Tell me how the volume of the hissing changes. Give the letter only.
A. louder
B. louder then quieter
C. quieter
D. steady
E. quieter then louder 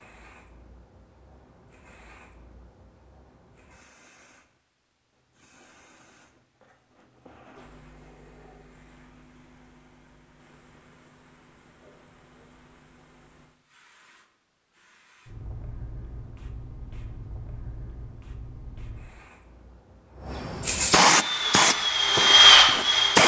A.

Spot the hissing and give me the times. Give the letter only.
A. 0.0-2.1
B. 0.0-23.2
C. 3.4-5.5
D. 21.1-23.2
B.